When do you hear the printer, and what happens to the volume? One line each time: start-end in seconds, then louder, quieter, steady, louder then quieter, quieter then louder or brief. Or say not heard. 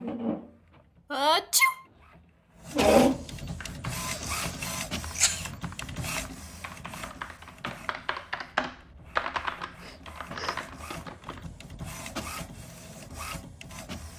0.0-14.1 quieter then louder.